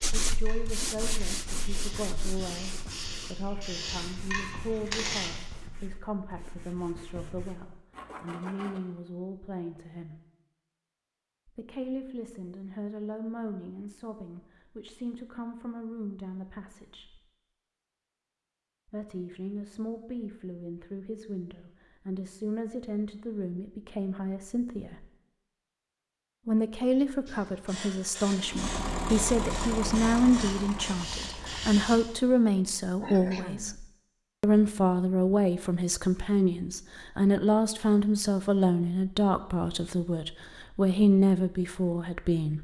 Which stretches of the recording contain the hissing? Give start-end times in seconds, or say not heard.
0.2-5.3, 27.2-32.0.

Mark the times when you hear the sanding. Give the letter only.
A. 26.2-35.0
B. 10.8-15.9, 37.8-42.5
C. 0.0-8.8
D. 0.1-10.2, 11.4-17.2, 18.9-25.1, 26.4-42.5
C.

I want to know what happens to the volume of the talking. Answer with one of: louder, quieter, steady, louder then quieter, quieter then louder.
louder.